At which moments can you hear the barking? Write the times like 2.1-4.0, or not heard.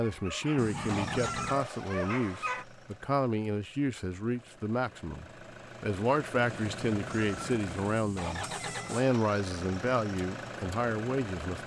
0.0-2.6.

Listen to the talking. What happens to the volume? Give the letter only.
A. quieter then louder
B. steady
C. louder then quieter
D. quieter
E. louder
B.